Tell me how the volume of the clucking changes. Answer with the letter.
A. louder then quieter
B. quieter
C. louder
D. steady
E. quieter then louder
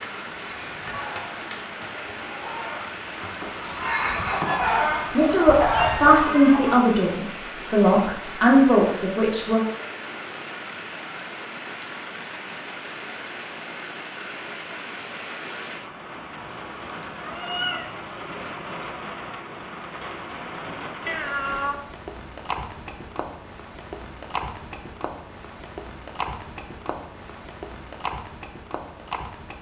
C.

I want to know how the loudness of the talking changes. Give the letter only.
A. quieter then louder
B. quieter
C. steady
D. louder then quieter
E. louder
A.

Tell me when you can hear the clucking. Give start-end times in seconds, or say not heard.
0.0-6.8.